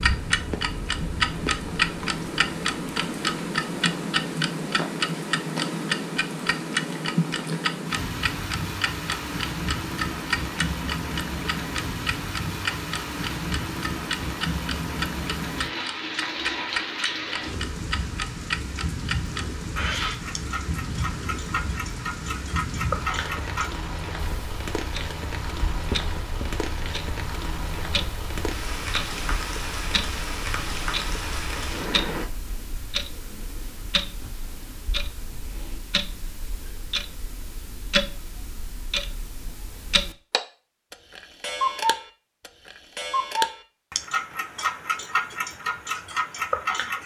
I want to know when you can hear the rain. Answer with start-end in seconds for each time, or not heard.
0.0-32.2.